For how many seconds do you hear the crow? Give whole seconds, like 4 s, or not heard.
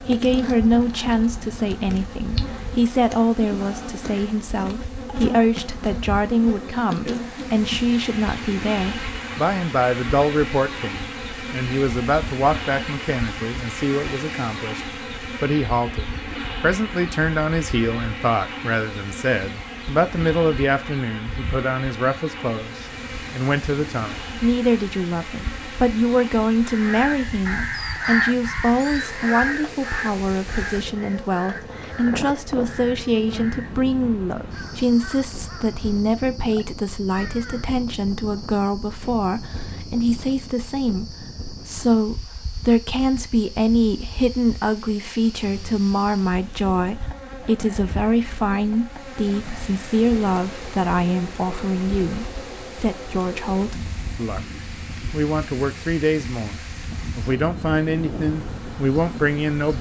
11 s.